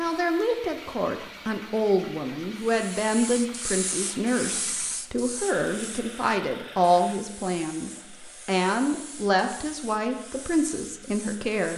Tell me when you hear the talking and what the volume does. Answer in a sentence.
You can hear the talking from 0.0 to 11.7 s, at a steady volume.